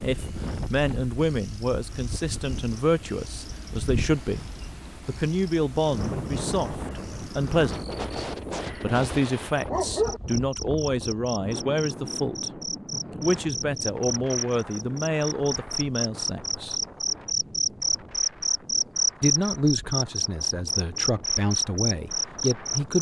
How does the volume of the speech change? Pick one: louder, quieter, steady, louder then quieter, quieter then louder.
steady.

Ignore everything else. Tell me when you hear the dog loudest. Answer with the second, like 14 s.
10 s.